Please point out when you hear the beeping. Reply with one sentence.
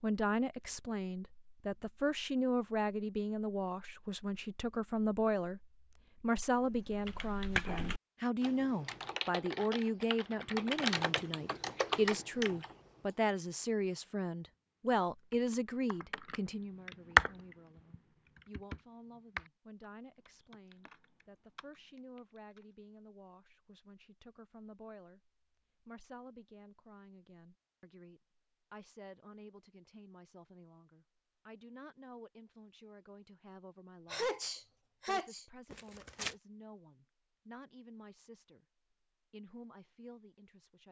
You can't hear the beeping here.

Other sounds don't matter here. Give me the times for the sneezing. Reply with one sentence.
You can hear the sneezing from 34.1 to 35.5 s.